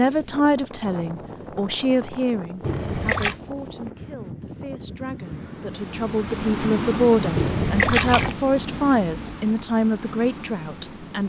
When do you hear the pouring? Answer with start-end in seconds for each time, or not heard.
2.6-3.4, 7.3-8.3.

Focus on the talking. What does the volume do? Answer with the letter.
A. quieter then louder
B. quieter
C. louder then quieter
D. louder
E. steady
A.